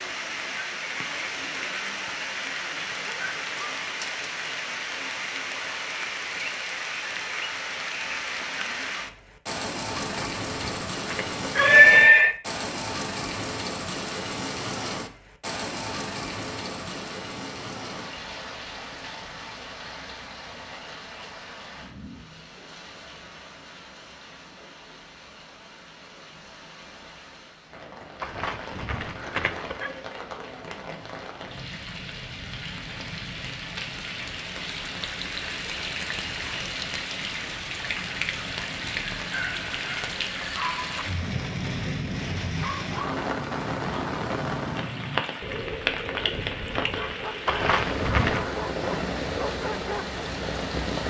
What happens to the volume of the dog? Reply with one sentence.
The loudness of the dog stays about the same.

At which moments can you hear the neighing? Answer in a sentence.
You can hear the neighing from 9.9 to 12.3 s, from 28.2 to 29.9 s and from 47.5 to 48.5 s.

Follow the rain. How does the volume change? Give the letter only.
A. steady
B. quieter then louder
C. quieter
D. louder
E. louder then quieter
B.